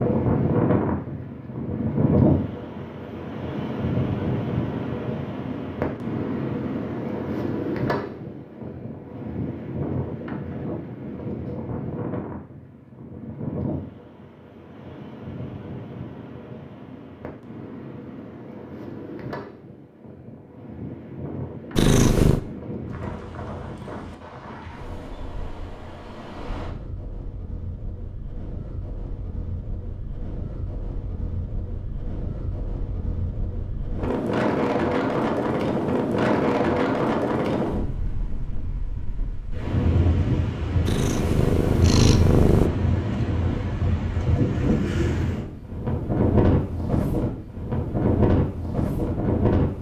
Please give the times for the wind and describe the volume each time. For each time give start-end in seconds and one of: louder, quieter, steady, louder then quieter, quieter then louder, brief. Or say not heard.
0.0-49.7 quieter then louder.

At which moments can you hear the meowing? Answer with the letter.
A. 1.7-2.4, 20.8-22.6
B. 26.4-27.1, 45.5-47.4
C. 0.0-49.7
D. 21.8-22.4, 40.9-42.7
D.